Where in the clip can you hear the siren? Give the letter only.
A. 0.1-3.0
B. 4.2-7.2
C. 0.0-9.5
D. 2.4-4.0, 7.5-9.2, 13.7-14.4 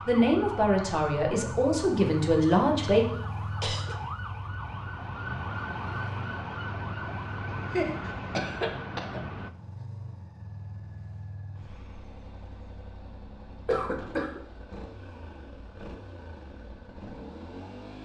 C.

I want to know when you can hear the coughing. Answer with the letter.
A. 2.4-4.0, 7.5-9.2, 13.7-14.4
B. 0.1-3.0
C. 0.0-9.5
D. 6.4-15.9
A.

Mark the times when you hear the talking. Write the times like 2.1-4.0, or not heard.
0.1-3.0.